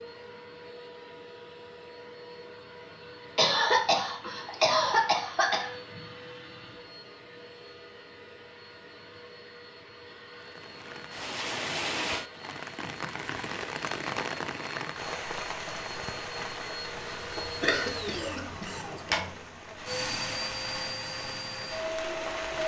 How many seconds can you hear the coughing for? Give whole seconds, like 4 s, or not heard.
4 s.